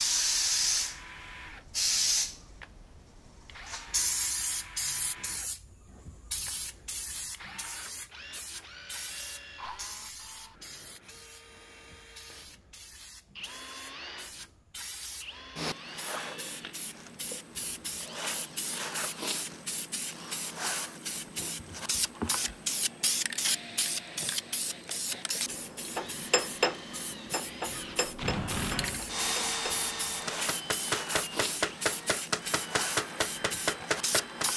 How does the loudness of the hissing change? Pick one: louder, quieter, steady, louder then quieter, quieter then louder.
quieter then louder.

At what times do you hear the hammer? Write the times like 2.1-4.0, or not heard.
25.9-34.5.